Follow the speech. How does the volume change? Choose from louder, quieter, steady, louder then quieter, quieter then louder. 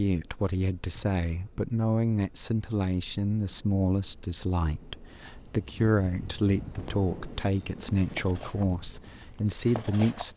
steady.